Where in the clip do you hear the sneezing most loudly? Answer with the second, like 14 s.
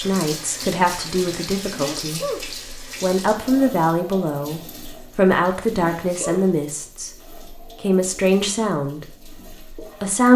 2 s.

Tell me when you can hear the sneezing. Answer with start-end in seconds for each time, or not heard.
1.7-2.4, 5.8-6.4.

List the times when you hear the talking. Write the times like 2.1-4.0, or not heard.
0.0-10.3.